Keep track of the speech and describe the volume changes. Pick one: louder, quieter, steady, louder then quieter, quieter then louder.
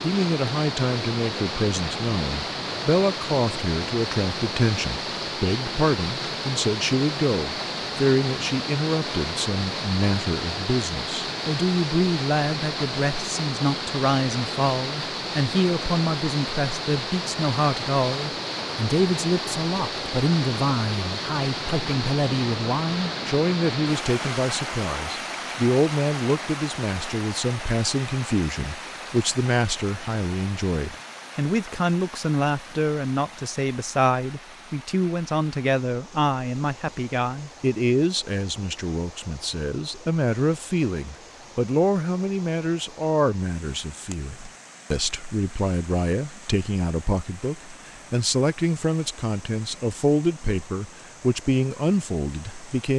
steady.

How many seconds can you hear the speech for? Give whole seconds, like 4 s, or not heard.
53 s.